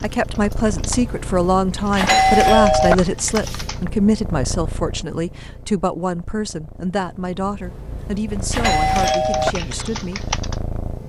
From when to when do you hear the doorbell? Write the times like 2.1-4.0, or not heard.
1.1-3.0, 7.6-9.6.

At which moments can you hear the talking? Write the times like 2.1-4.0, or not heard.
0.0-10.3.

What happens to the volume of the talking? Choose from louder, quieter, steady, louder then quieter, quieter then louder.
quieter.